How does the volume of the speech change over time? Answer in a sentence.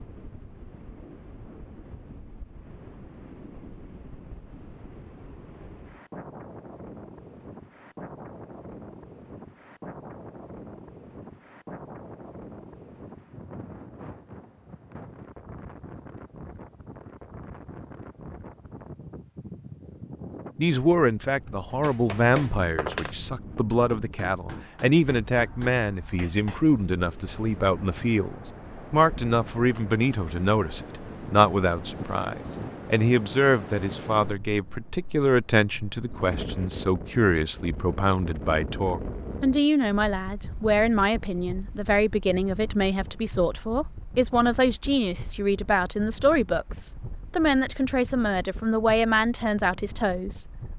The volume of the speech stays about the same.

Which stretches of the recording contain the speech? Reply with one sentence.
The speech can be heard from 20.6 to 50.5 s.